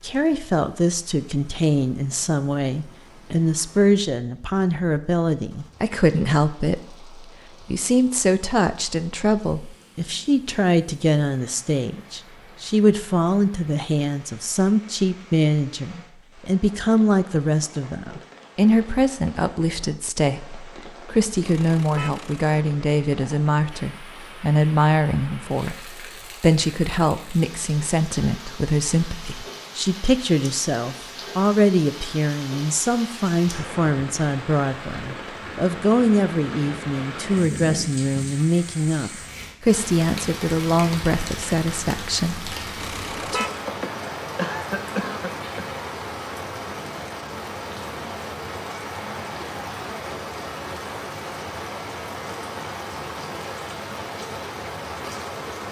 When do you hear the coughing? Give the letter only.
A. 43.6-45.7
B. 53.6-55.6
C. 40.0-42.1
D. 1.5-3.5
A.